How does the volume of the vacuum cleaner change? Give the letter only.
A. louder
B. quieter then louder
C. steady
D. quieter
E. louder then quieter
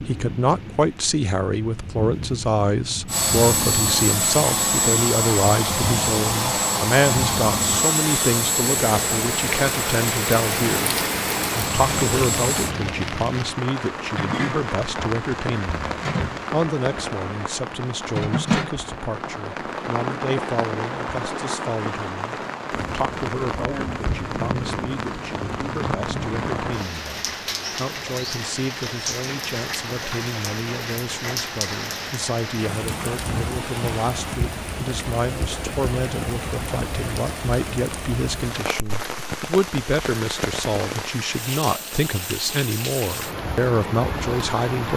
D.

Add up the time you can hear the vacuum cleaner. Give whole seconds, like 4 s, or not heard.
10 s.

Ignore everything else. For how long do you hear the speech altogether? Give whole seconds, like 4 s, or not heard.
45 s.